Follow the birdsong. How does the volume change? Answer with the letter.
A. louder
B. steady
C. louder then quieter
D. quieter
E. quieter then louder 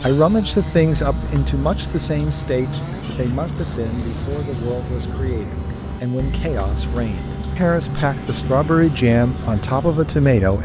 B.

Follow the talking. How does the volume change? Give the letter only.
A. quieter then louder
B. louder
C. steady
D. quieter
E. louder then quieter
A.